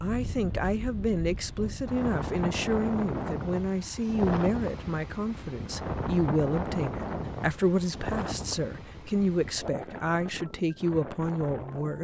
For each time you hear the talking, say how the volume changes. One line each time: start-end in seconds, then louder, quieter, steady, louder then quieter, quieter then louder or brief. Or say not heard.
0.0-12.0 steady.